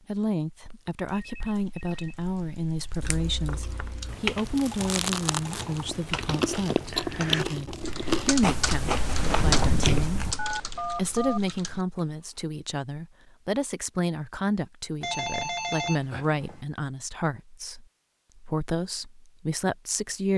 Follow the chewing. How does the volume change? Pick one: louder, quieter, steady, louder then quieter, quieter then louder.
louder.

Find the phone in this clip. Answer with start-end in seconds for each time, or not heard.
0.7-2.1, 10.3-11.4, 15.0-16.6.